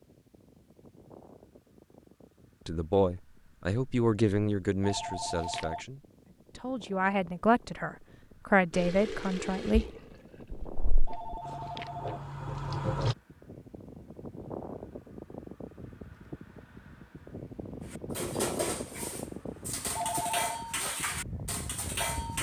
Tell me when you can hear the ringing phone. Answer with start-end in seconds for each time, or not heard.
4.8-5.8, 11.1-12.2, 19.9-20.6.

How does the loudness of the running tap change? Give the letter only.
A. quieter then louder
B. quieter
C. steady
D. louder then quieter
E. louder
A.